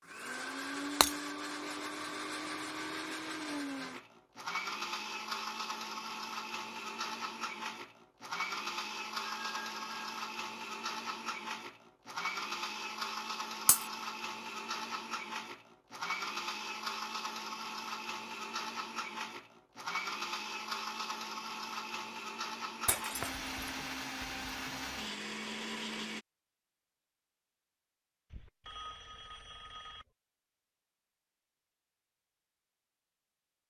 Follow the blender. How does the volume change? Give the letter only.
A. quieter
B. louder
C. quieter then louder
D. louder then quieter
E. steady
E.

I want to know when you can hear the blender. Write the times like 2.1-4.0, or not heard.
0.0-26.2.